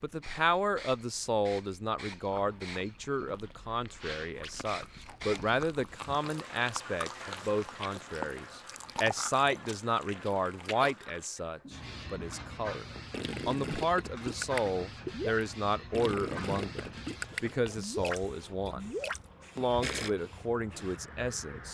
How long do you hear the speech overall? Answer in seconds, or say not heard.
20 s.